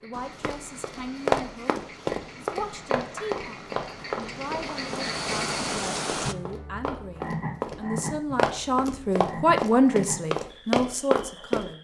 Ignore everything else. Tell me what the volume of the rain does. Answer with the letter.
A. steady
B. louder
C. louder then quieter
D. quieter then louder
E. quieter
B.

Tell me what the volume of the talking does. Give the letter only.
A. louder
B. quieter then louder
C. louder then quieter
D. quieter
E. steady
A.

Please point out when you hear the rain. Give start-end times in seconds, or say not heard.
0.0-6.3.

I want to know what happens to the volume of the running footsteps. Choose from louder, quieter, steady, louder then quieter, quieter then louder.
quieter then louder.